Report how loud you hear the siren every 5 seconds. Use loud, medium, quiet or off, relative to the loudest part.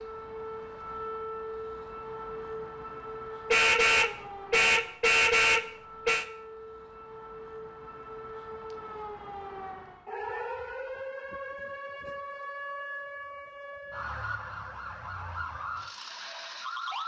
loud, medium, loud, loud.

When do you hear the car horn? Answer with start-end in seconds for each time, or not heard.
3.5-6.2.